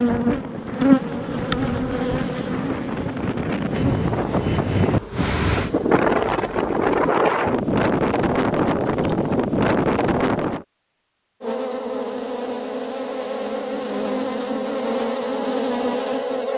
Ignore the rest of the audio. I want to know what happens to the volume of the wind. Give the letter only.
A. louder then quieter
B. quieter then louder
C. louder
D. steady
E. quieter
C.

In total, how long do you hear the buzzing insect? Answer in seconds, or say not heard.
12 s.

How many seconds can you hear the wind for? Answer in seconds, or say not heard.
11 s.